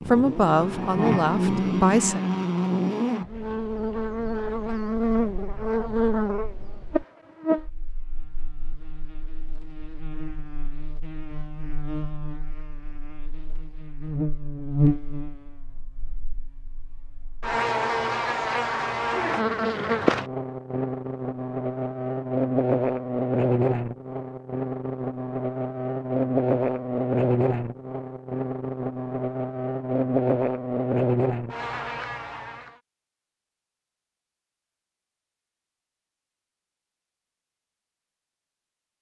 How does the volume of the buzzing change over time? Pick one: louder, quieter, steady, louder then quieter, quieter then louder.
quieter then louder.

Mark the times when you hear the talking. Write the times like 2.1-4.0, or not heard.
0.1-2.2.